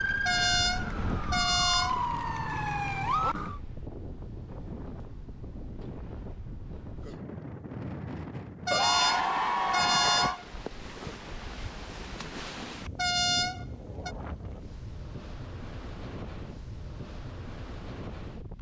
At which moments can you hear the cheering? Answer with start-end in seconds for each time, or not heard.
8.7-10.4.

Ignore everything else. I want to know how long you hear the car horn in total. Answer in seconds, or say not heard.
5 s.